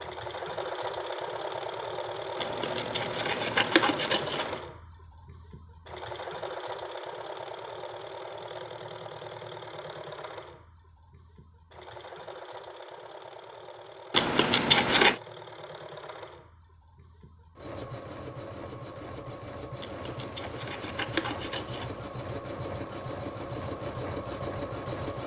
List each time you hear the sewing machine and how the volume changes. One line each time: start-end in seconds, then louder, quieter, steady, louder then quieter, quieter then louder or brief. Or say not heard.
0.0-25.2 quieter then louder.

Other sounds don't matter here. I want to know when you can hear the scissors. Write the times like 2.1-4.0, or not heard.
2.4-4.6, 14.1-15.2, 19.8-22.0.